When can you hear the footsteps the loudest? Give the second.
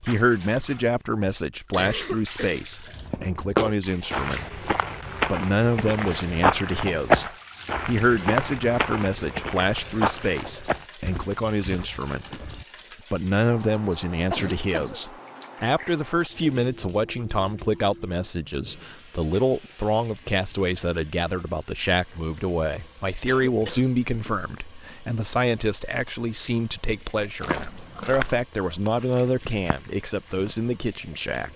7 s.